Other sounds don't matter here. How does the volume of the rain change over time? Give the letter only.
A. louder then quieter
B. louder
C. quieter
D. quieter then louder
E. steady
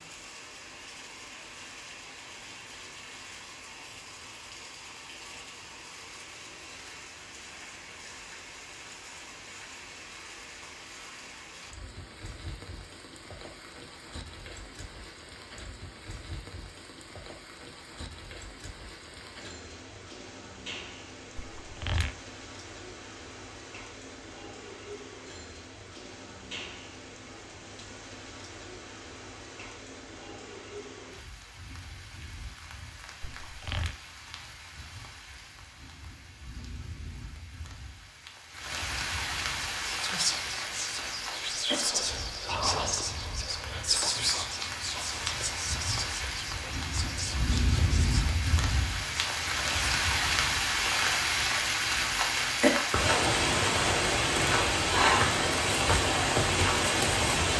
B.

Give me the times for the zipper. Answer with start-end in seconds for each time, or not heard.
21.6-22.1, 33.2-34.0.